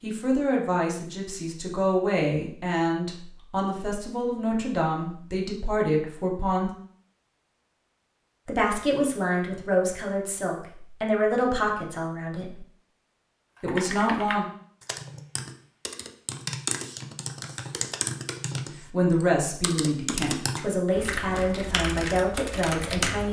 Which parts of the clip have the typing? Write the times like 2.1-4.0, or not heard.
13.6-23.2.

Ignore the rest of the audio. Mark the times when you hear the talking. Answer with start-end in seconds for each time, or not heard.
0.0-6.7, 8.4-12.7, 13.6-14.4, 18.9-23.2.